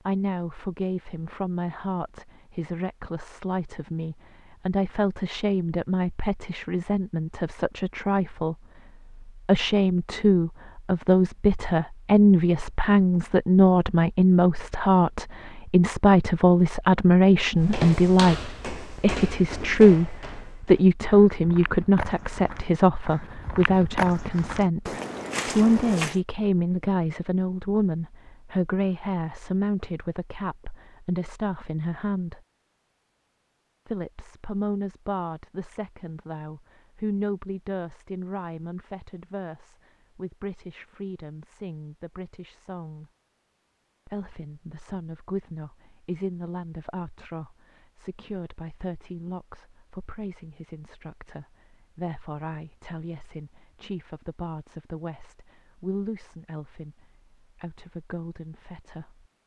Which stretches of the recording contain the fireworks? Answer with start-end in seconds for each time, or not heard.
not heard.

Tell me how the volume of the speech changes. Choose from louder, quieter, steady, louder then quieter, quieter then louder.
louder then quieter.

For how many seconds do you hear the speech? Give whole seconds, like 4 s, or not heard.
56 s.